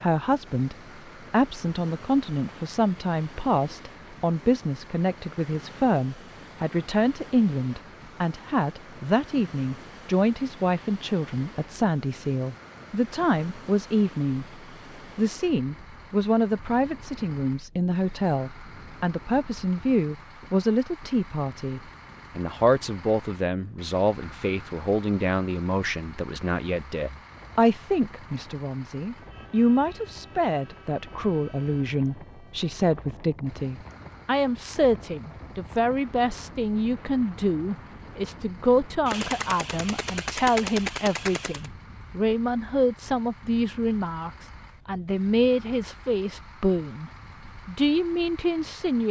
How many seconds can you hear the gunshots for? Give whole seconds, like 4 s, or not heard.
3 s.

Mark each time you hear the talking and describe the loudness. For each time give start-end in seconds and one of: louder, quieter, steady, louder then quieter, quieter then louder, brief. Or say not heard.
0.0-49.0 steady.